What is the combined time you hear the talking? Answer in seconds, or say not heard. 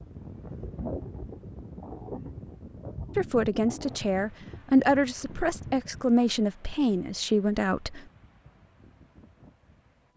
5 s.